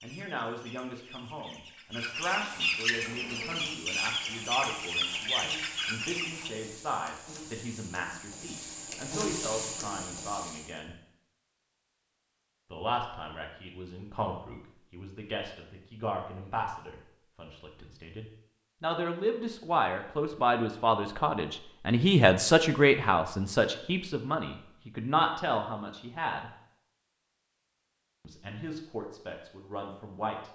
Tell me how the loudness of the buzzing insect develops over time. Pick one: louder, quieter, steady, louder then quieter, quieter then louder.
louder.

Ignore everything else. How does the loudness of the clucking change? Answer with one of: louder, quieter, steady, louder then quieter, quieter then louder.
louder.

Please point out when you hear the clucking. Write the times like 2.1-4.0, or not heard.
0.0-6.5.